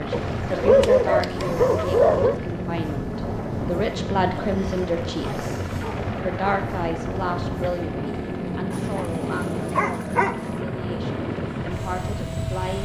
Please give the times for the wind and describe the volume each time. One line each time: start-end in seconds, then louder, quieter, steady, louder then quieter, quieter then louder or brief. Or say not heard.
0.0-12.8 steady.